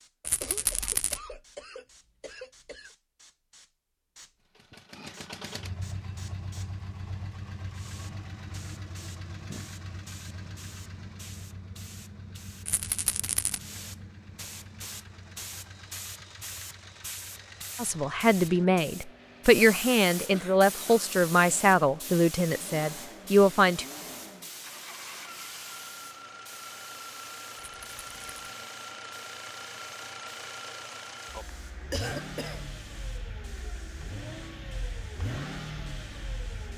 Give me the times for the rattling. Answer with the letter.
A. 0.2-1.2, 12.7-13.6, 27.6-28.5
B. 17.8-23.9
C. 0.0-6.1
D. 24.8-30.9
A.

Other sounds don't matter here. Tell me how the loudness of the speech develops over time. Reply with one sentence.
The loudness of the speech stays about the same.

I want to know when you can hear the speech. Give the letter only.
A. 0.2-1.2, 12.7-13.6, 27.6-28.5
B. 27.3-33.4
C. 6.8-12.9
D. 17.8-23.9
D.